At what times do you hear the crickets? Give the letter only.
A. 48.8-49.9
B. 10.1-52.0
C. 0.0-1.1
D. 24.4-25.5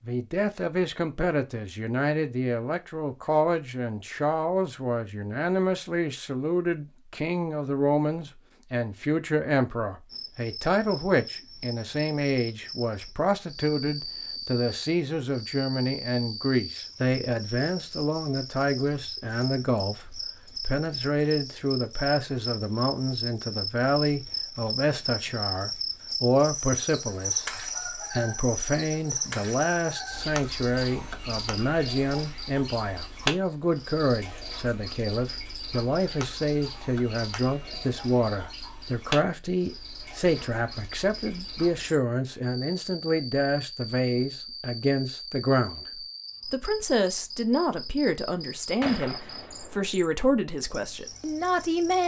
B.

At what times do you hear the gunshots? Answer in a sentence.
The gunshots can be heard from 48.8 to 49.9 s.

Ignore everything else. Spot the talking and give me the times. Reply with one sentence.
You can hear the talking from 0.0 to 45.9 s and from 46.5 to 52.0 s.